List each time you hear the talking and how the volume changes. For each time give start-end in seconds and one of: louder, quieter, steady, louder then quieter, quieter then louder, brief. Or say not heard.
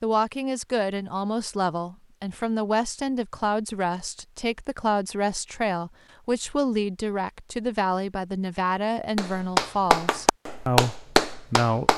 0.0-11.9 steady.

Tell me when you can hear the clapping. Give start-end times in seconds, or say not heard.
9.2-11.9.